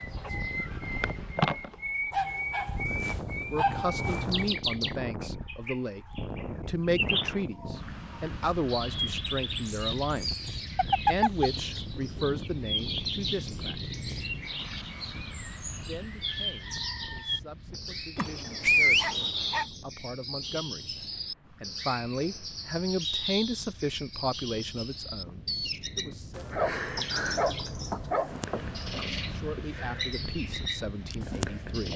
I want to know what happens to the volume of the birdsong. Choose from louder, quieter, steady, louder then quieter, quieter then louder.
steady.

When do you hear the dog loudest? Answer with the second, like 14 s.
19 s.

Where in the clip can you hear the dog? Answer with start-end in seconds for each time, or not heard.
2.1-4.5, 10.8-11.5, 18.1-19.6, 26.4-29.1.